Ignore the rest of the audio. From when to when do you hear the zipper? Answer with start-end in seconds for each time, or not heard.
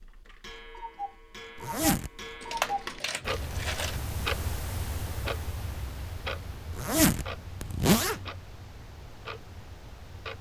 1.6-2.1, 6.7-8.2.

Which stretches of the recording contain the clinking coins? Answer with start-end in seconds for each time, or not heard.
2.4-4.0.